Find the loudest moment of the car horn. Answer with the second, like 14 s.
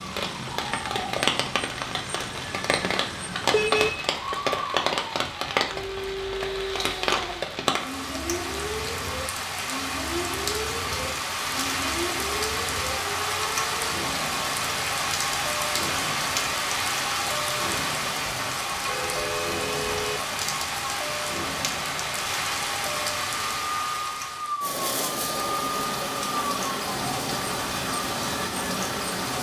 4 s.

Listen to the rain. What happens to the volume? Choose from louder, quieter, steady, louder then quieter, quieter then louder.
steady.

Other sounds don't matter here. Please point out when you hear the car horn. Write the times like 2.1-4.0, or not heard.
3.5-4.1, 18.2-20.2.